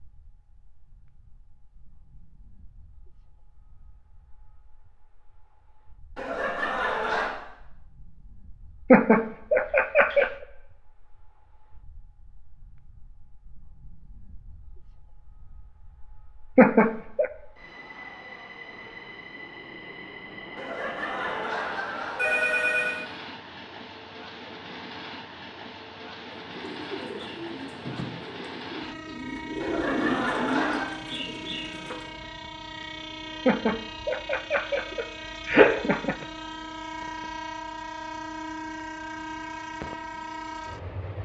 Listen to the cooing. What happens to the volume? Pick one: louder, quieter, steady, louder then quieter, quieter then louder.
louder then quieter.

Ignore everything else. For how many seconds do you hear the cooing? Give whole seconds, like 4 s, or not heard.
6 s.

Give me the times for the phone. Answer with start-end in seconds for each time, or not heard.
6.2-7.3, 20.6-23.1, 29.6-30.9.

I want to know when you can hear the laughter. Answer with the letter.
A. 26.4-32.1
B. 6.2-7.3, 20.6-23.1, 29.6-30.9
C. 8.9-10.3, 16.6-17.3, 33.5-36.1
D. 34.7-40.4
C.